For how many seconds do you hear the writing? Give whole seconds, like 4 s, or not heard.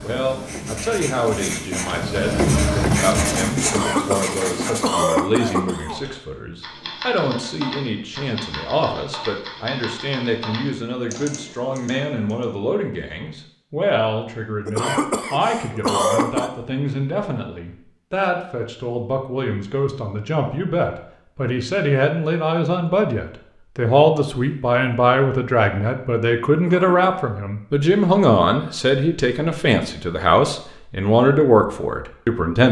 5 s.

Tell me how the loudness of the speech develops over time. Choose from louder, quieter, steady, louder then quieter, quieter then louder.
louder.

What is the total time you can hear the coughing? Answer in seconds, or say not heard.
5 s.